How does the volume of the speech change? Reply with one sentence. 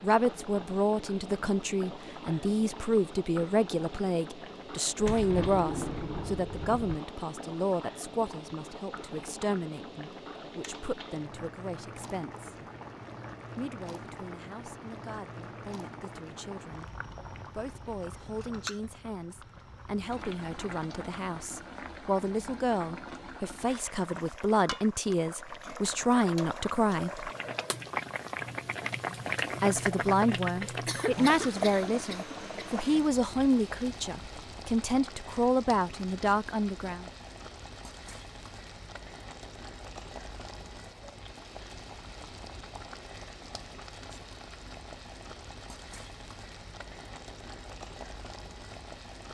The volume of the speech goes down, then up.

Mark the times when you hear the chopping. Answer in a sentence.
You can't hear the chopping here.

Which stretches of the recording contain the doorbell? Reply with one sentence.
The doorbell can't be heard in this clip.